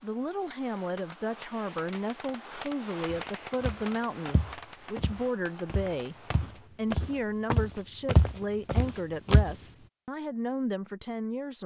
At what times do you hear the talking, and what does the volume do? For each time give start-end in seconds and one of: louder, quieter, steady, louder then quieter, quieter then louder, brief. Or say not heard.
0.0-11.6 steady.